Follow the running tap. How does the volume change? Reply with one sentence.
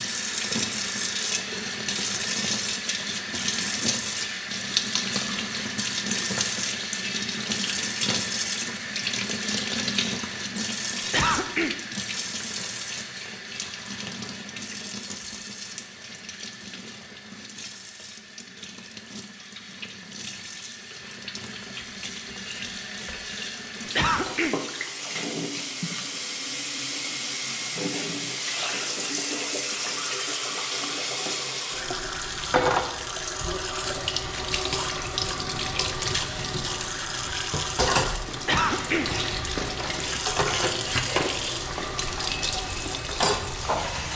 The volume of the running tap goes down, then up.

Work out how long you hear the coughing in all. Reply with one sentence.
The coughing can be heard for 2 seconds in total.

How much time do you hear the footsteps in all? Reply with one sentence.
The footsteps can be heard for 6 seconds in total.